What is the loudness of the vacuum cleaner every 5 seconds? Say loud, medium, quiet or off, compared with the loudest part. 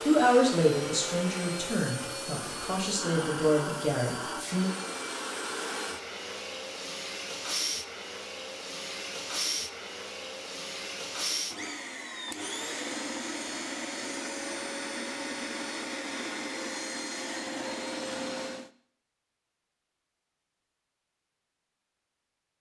loud, loud, loud, loud, off.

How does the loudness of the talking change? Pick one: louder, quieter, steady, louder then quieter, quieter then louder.
quieter then louder.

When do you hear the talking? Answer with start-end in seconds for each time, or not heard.
0.0-4.7.